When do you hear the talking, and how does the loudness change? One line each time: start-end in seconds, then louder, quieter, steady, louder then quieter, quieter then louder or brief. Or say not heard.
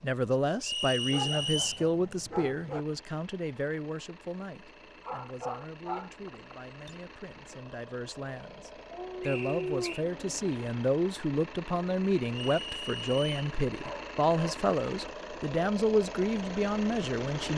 0.0-17.5 quieter then louder.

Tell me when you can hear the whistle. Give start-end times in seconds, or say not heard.
0.6-1.9, 9.2-10.1, 12.3-13.5.